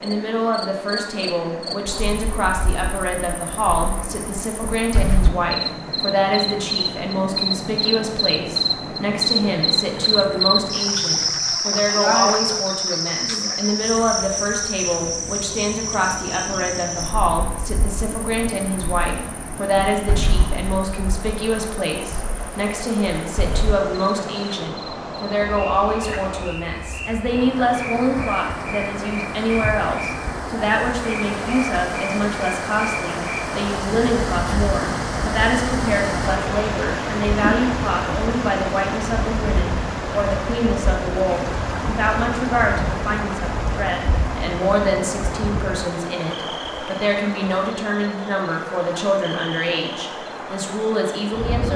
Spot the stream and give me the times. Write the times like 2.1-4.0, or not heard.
0.0-51.7.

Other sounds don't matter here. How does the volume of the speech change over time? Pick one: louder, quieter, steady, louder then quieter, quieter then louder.
steady.